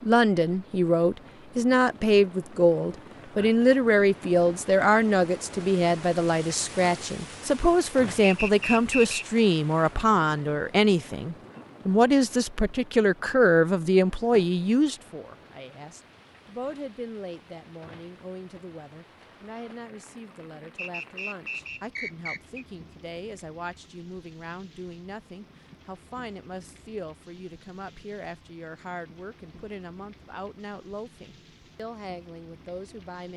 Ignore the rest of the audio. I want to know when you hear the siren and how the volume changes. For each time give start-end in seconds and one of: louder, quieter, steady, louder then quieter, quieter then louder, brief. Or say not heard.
not heard.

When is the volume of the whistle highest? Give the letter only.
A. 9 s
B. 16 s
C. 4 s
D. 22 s
A.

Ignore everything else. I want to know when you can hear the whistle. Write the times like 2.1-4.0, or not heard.
8.2-9.2, 20.8-22.6.